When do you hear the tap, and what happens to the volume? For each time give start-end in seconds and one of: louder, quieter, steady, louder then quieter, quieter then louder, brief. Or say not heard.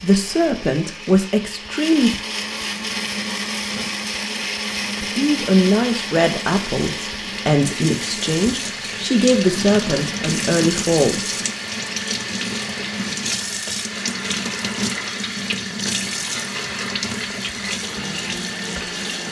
2.8-19.2 louder.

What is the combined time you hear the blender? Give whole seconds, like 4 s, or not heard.
19 s.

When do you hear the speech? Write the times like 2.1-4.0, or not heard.
0.0-2.2, 5.0-11.2.